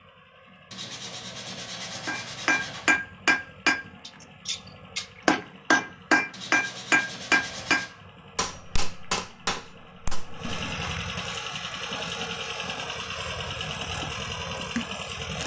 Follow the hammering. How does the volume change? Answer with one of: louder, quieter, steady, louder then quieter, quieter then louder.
quieter.